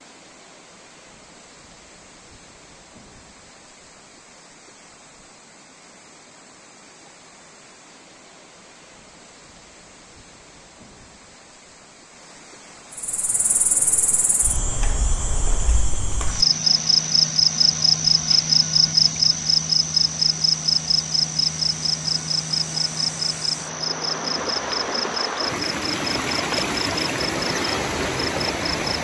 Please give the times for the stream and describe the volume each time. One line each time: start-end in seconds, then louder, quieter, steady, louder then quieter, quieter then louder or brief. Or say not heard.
0.0-28.9 louder.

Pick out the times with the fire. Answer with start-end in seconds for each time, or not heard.
not heard.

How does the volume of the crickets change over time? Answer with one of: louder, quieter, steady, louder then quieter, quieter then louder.
louder then quieter.